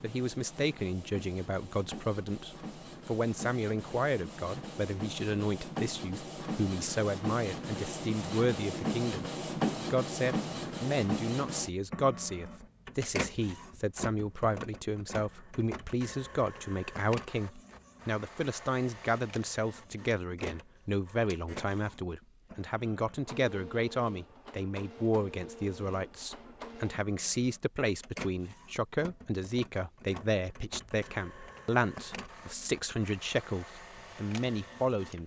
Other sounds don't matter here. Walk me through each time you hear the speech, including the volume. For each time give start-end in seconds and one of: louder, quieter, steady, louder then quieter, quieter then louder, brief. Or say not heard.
0.0-9.2 steady
9.9-35.2 steady.